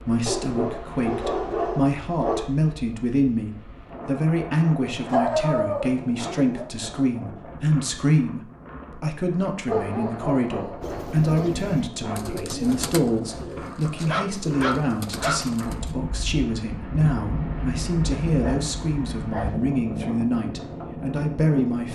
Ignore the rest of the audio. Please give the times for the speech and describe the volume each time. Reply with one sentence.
You can hear the speech from 0.0 to 21.8 s, at a steady volume.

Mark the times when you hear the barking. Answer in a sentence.
The barking can be heard from 0.2 to 2.5 s, from 5.0 to 6.7 s, from 9.7 to 11.5 s, from 13.9 to 15.4 s and from 18.1 to 19.8 s.